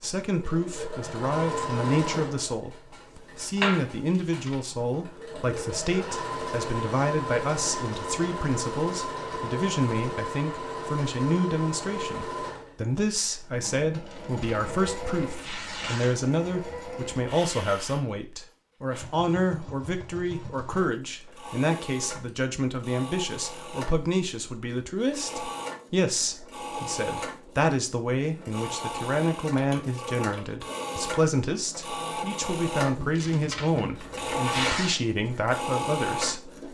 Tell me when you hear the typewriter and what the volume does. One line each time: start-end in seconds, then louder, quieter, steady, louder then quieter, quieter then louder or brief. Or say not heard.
not heard.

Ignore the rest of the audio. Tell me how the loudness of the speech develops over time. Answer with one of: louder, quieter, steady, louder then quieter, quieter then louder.
steady.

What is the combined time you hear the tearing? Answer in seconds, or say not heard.
5 s.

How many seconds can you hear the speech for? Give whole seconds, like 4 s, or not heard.
37 s.